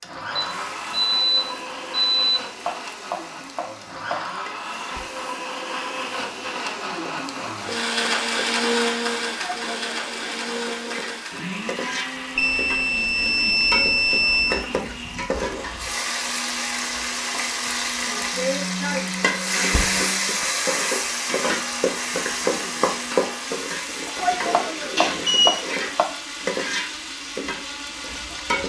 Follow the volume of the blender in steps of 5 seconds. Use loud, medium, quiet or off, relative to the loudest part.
medium, loud, medium, medium, medium, medium.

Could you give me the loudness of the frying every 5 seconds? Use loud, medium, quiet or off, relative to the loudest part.
quiet, quiet, medium, loud, loud, medium.